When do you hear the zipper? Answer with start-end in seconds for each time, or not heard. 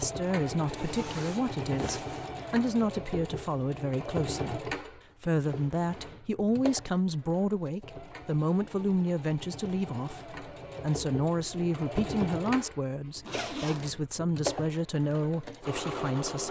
0.7-2.2, 13.2-13.9.